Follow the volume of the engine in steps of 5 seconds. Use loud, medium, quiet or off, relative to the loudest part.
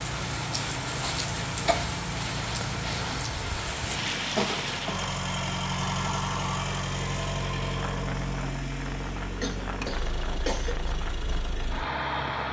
medium, loud, loud.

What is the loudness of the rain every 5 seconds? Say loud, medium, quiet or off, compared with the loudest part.
loud, medium, medium.